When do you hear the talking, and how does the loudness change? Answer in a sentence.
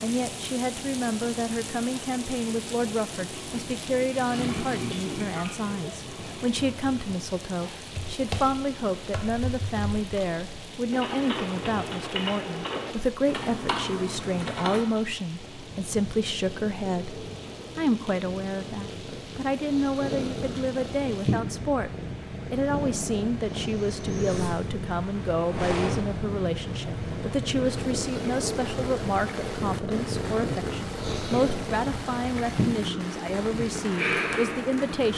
You can hear the talking from 0.0 to 21.9 s, at a steady volume; and from 22.5 to 35.1 s, at a steady volume.